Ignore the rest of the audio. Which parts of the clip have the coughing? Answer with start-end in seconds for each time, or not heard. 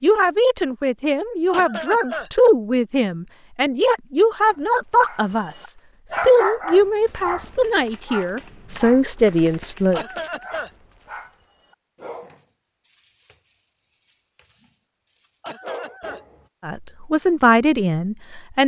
1.5-2.3, 9.9-10.7, 15.4-16.2.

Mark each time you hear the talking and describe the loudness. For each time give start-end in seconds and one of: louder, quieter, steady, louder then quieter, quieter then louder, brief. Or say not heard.
0.0-10.0 steady
16.6-18.6 brief.